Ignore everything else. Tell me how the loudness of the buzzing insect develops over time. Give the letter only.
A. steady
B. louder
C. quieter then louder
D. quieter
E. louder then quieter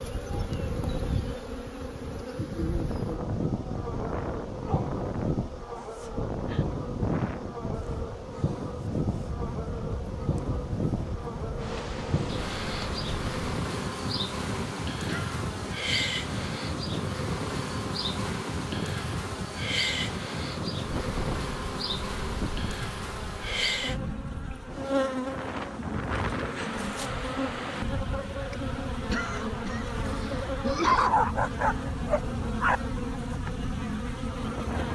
A.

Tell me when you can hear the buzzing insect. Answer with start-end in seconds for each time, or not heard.
0.0-34.9.